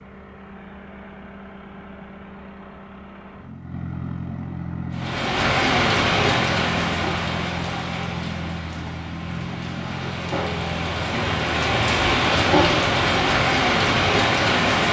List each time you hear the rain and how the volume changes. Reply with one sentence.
You can hear the rain from 4.9 to 14.8 s, getting quieter then louder.